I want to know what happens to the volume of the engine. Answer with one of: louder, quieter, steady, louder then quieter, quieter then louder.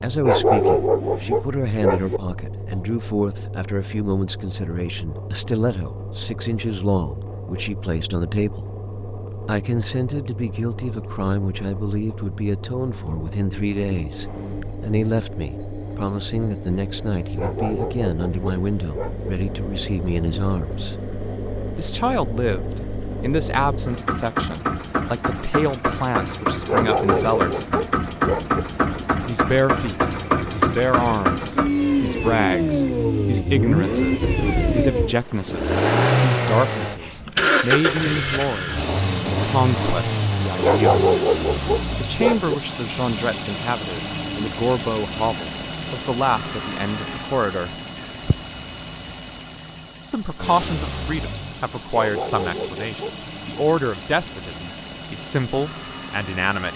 louder then quieter.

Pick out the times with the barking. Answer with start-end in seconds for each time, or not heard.
0.2-2.2, 17.4-19.3, 26.6-28.6, 40.6-42.5, 51.9-53.1.